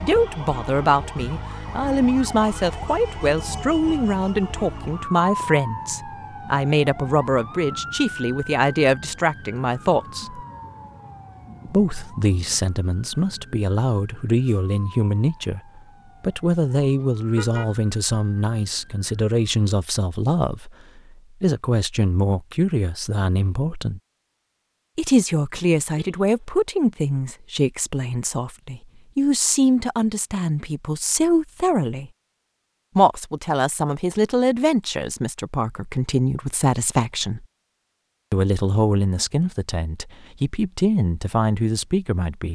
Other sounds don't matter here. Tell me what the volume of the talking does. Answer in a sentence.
The volume of the talking stays about the same.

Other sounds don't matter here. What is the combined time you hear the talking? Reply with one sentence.
The talking can be heard for 39 seconds in total.